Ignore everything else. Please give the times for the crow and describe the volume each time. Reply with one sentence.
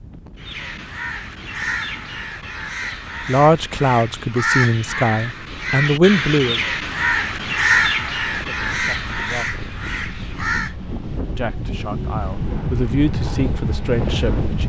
The crow can be heard from 0.3 to 10.8 s, getting louder then quieter.